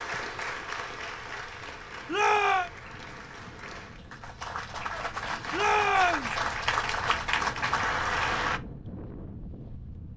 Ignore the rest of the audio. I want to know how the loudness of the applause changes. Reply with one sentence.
The volume of the applause goes down, then up.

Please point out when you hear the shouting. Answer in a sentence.
The shouting can be heard from 2.0 to 2.7 s and from 5.5 to 6.3 s.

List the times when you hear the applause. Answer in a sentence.
The applause can be heard from 0.0 to 8.6 s.